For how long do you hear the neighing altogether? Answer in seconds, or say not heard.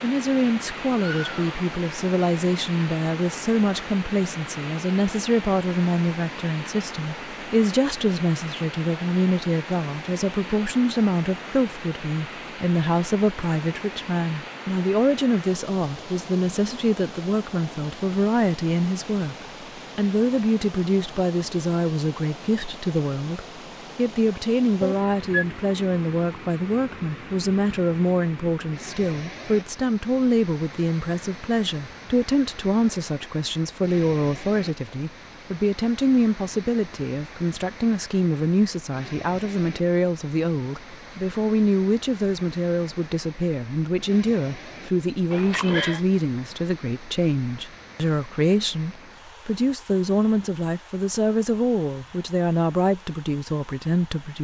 2 s.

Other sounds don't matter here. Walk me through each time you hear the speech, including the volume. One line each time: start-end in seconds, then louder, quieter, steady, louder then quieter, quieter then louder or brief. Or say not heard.
0.0-54.3 steady.